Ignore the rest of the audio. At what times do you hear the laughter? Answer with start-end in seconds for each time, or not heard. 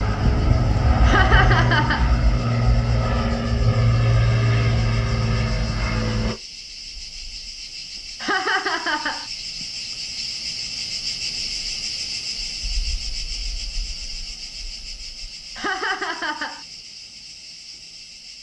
1.1-2.1, 8.2-9.2, 15.6-16.6.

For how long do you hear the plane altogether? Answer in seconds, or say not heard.
6 s.